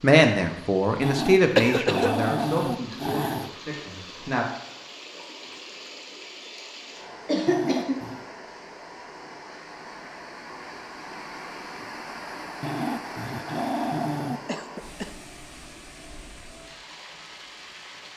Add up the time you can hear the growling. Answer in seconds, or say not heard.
5 s.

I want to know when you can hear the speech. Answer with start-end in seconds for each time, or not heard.
0.0-4.5.